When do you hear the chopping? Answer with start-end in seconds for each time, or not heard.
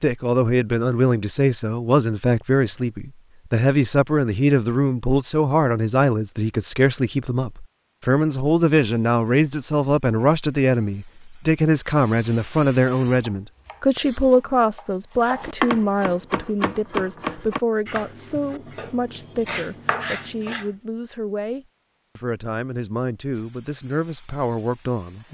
13.2-20.7.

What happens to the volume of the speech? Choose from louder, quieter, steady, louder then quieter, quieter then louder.
quieter.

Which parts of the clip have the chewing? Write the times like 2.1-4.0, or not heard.
not heard.